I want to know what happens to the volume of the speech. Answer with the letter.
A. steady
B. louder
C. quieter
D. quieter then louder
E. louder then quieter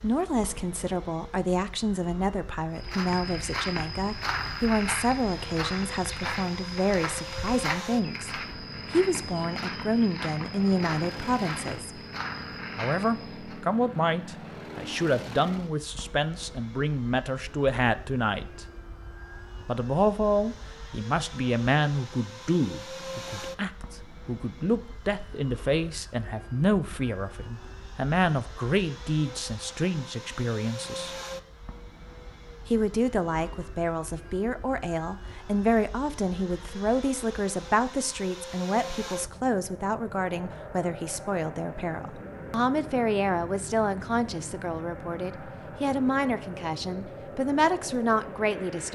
A.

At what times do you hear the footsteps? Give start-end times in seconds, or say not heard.
2.8-13.6.